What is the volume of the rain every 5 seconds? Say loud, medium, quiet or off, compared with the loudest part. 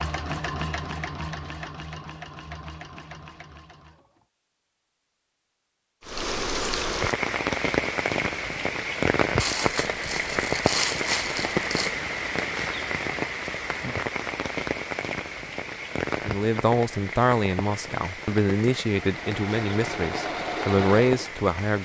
off, loud, loud, medium, medium.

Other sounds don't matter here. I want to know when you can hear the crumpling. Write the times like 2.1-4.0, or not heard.
9.3-11.9.